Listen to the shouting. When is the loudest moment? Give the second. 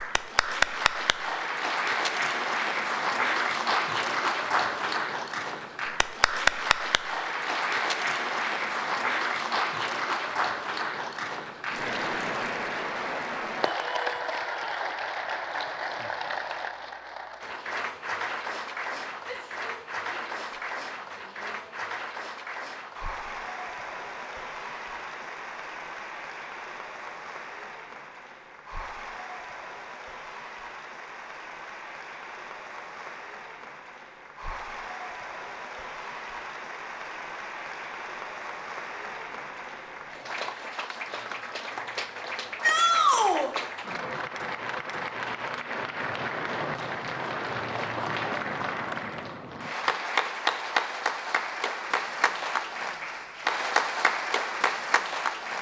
43 s.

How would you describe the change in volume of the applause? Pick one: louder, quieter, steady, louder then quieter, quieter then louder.
quieter then louder.